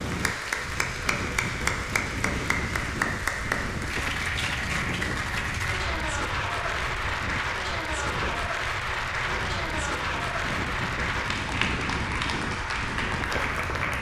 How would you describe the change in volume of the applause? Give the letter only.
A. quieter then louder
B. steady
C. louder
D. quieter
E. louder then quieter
B.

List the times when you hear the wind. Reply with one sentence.
The wind can be heard from 0.0 to 13.9 s.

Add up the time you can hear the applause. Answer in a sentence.
You can hear the applause for 14 seconds altogether.